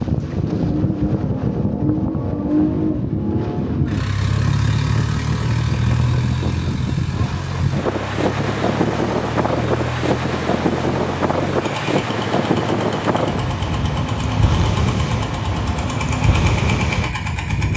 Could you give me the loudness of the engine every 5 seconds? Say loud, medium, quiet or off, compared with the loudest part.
loud, loud, medium, medium.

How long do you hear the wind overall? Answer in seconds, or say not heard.
18 s.